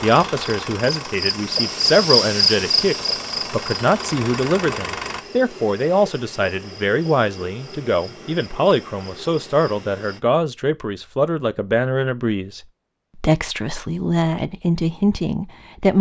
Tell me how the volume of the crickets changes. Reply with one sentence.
The loudness of the crickets goes down.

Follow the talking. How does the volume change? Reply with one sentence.
The loudness of the talking stays about the same.